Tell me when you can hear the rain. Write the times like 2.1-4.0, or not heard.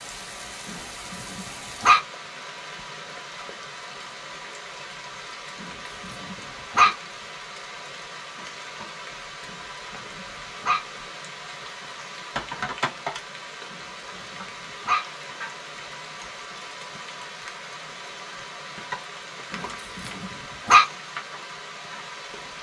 0.0-22.5.